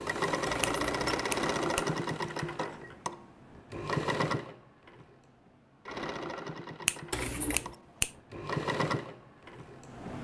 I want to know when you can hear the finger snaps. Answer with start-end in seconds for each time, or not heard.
0.6-1.9, 6.8-8.1.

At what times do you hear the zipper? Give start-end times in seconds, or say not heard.
0.5-1.2, 7.1-7.8.